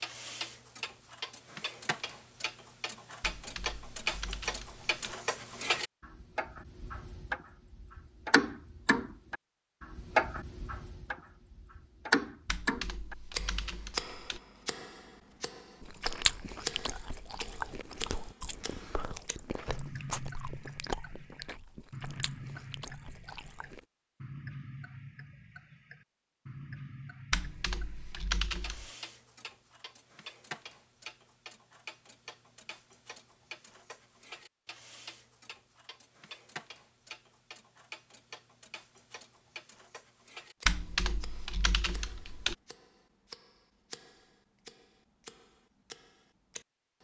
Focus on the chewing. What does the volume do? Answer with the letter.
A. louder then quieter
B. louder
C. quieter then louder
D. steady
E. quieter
E.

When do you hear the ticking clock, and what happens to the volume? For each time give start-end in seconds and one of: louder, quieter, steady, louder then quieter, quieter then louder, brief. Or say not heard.
0.0-47.0 quieter.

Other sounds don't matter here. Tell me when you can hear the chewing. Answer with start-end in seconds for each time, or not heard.
15.8-23.9.